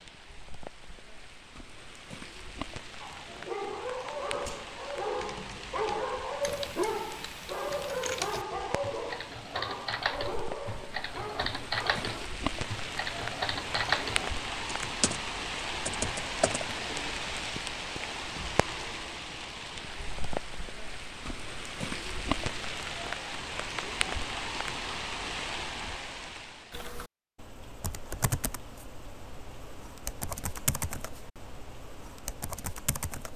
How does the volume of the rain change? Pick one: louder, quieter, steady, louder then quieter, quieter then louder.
louder.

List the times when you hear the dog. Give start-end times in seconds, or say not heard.
3.0-12.0.